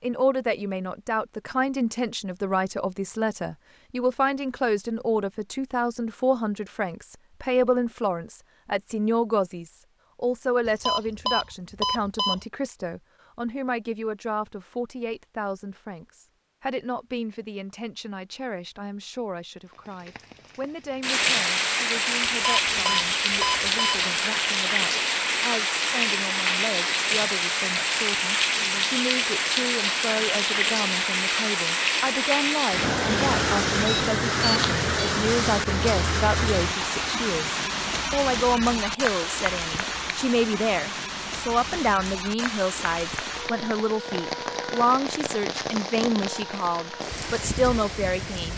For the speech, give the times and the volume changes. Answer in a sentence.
You can hear the speech from 0.0 to 48.5 s, getting quieter then louder.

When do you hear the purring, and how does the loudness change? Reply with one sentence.
The purring can't be heard in this clip.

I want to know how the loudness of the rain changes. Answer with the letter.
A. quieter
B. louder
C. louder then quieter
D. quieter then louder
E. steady
A.